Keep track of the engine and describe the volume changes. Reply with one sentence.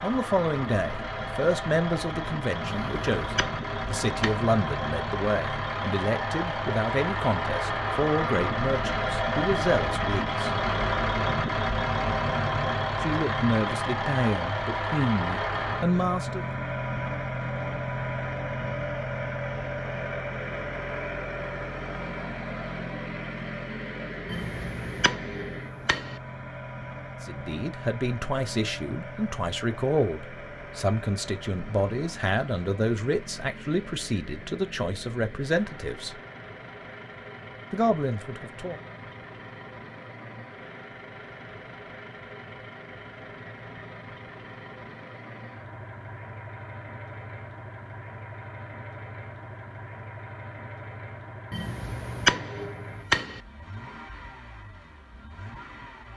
The loudness of the engine goes down.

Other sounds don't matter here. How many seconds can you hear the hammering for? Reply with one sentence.
The hammering can be heard for 6 seconds in total.